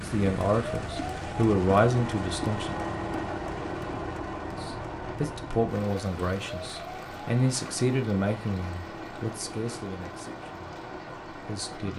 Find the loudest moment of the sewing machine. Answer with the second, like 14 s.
3 s.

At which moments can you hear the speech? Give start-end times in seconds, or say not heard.
0.0-2.8, 4.5-10.6, 11.4-11.9.